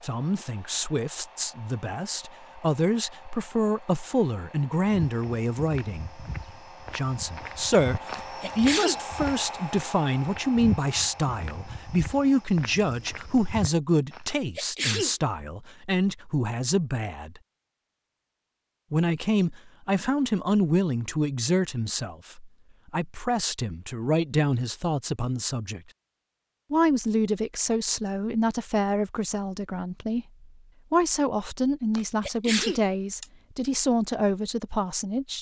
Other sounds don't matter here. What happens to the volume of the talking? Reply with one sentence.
The loudness of the talking stays about the same.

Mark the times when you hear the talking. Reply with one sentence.
The talking can be heard from 0.0 to 6.2 s, from 6.9 to 17.4 s, from 18.9 to 25.8 s, from 26.7 to 30.2 s and from 30.9 to 35.3 s.